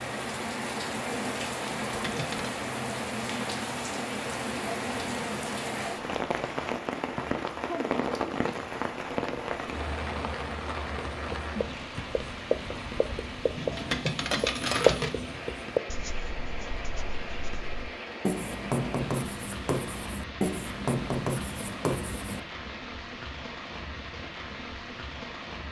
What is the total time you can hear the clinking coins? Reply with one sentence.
The clinking coins can be heard for 2 seconds in total.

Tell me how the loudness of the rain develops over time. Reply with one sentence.
The volume of the rain goes down.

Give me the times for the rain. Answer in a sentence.
You can hear the rain from 0.0 to 25.6 s.